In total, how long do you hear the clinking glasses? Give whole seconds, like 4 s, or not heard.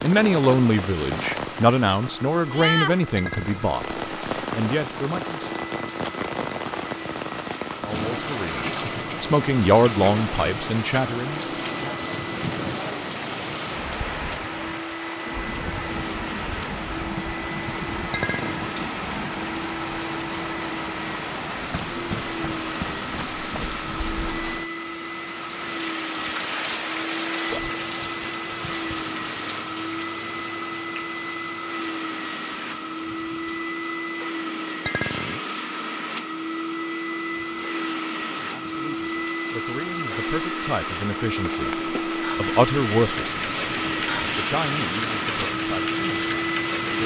2 s.